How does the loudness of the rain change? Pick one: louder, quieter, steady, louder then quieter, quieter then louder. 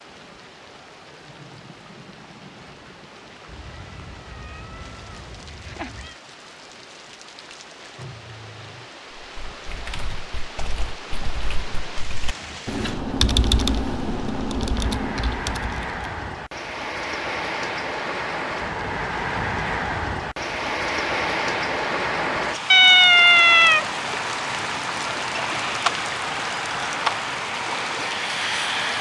louder.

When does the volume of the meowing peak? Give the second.
23 s.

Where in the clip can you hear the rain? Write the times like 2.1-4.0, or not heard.
0.0-28.9.